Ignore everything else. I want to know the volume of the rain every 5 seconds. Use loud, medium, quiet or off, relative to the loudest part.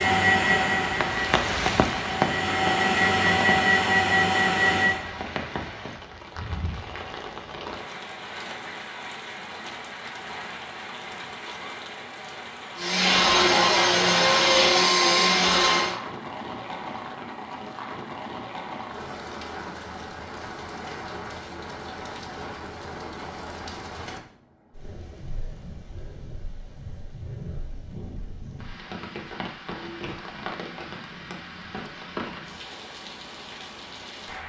loud, medium, medium, medium, medium, quiet, medium.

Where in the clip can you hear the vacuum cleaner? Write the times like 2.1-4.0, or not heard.
0.0-5.0, 12.8-15.9.